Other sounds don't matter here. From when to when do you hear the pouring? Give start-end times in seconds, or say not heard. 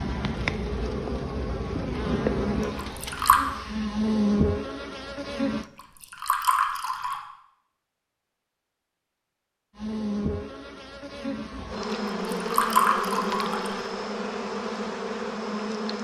2.9-3.4, 5.8-7.2, 12.2-13.9.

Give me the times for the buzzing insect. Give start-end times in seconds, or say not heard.
0.0-5.7, 9.8-15.9.